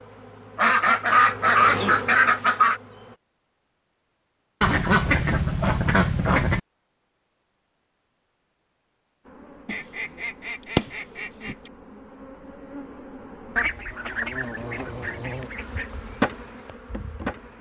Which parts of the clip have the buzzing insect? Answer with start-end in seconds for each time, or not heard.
0.0-3.2, 9.2-17.5.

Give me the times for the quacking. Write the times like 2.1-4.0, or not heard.
0.6-2.8, 4.6-6.6, 9.7-11.5, 13.6-15.9.